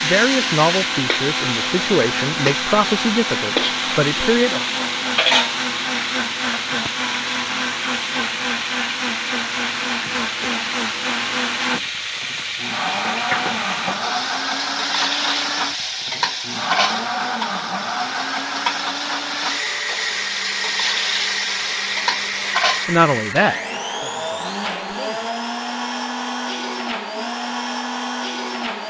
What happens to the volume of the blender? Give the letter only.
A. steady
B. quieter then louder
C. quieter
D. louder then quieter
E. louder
A.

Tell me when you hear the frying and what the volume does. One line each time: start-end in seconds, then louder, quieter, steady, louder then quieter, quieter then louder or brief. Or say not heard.
0.0-22.9 steady.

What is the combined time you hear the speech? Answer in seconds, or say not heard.
7 s.